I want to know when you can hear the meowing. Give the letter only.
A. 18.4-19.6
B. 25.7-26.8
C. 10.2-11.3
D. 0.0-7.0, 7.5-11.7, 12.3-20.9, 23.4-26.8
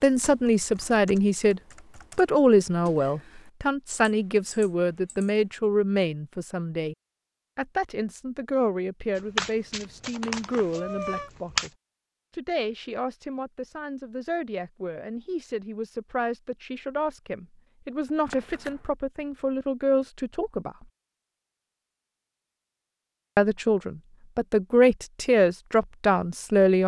C.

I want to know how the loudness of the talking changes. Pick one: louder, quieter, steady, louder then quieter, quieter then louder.
quieter then louder.